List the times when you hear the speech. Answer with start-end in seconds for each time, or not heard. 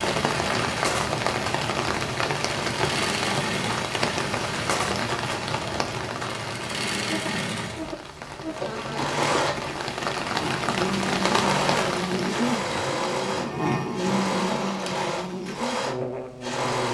not heard.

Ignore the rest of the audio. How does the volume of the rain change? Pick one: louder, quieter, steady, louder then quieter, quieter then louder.
quieter then louder.